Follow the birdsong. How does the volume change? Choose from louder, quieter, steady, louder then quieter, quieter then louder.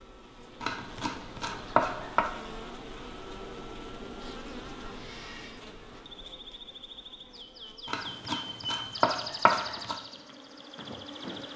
louder then quieter.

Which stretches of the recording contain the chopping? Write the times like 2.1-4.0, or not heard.
0.6-2.3, 7.8-9.9.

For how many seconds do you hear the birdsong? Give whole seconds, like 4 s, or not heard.
7 s.